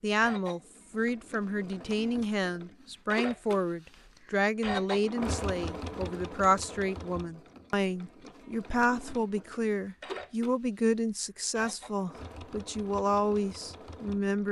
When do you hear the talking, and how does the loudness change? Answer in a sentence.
The talking can be heard from 0.0 to 14.4 s, at a steady volume.